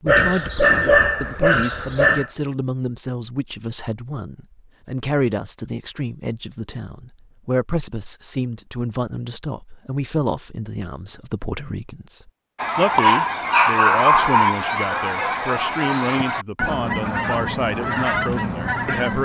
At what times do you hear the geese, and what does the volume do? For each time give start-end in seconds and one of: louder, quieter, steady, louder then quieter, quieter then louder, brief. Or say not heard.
12.6-19.2 steady.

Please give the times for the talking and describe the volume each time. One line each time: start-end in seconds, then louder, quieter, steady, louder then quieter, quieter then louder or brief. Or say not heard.
0.0-19.2 steady.